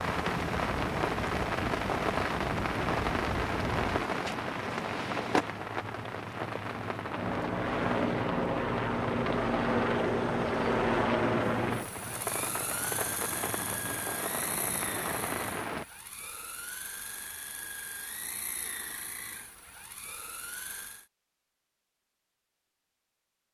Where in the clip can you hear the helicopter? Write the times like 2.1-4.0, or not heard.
0.1-4.1, 7.0-21.1.